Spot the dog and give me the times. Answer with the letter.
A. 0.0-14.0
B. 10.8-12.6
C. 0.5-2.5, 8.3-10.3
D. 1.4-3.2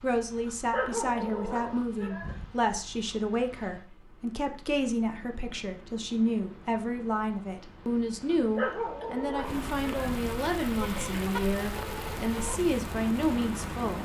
C.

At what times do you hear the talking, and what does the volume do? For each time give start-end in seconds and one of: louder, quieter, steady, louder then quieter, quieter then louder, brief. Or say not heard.
0.0-14.0 steady.